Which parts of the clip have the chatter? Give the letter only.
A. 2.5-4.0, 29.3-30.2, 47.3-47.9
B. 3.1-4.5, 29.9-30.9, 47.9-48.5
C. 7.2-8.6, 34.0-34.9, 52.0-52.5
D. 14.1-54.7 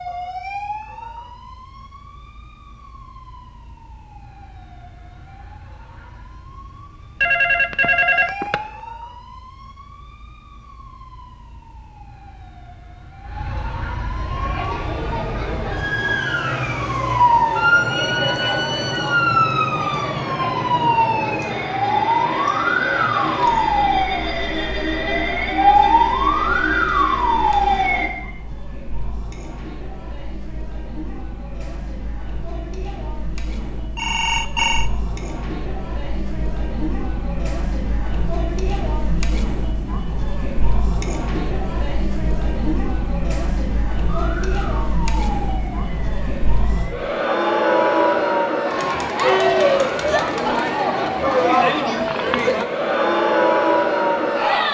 D.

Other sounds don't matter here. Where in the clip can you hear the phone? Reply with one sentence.
The phone can be heard from 7.2 to 8.6 s, from 34.0 to 34.9 s and from 52.0 to 52.5 s.